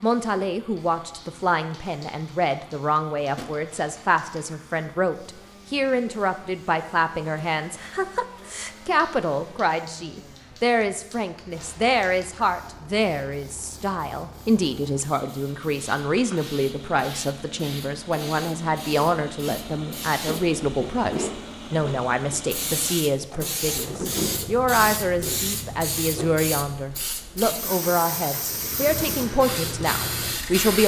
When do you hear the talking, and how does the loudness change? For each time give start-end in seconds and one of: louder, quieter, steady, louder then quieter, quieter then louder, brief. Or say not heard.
0.0-30.8 steady.